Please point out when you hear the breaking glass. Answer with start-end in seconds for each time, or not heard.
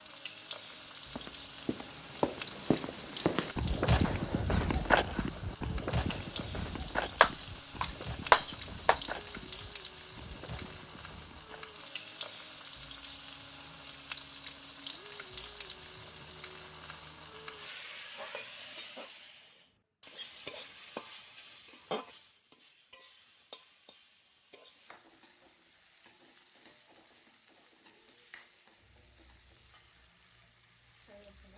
7.2-9.0.